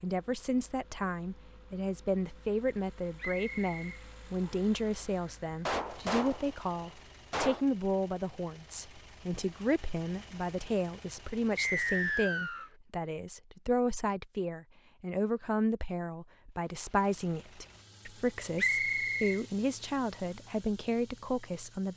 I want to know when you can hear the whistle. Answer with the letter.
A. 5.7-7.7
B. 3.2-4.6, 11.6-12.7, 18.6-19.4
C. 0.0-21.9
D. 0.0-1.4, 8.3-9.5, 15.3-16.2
B.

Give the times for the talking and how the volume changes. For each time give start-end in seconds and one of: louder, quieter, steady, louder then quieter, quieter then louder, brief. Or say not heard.
0.0-21.9 steady.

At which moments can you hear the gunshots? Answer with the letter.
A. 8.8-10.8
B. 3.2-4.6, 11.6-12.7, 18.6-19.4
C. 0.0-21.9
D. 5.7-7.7
D.